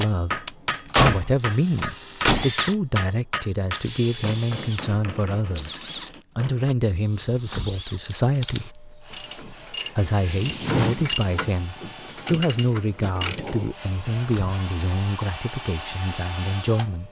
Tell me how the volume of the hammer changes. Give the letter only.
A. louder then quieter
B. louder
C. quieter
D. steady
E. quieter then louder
C.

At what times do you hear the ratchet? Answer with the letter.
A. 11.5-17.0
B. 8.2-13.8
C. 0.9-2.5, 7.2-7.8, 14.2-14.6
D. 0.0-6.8
B.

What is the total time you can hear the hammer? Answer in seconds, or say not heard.
7 s.